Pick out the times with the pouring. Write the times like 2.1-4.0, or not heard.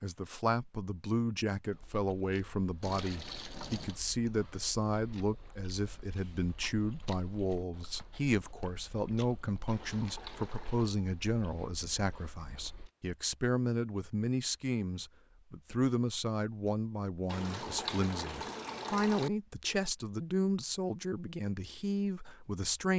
2.8-4.0, 9.7-10.9, 17.2-19.3.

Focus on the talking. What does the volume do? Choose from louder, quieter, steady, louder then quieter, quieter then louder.
steady.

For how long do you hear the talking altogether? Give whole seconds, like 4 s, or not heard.
23 s.